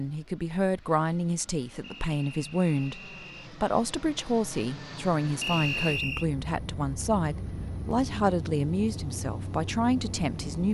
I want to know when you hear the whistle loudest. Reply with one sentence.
The loudest moment of the whistle is at 6 seconds.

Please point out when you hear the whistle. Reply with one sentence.
You can hear the whistle from 1.9 to 3.5 s and from 5.4 to 6.2 s.